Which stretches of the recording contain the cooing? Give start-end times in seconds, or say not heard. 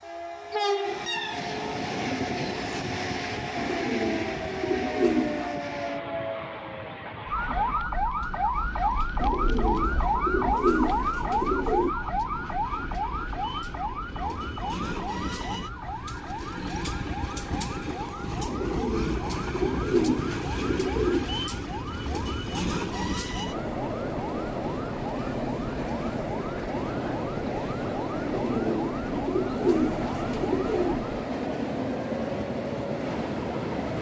3.5-5.5, 9.2-11.9, 18.4-21.2, 28.2-31.1.